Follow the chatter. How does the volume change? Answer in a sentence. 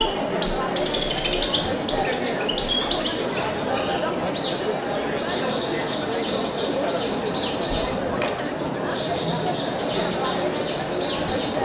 The volume of the chatter stays about the same.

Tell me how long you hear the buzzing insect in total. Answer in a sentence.
You can't hear the buzzing insect here.